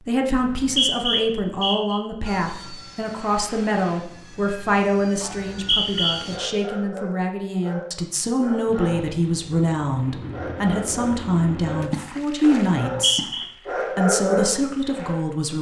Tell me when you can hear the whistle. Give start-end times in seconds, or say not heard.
0.3-2.0, 5.3-6.2, 12.8-13.4.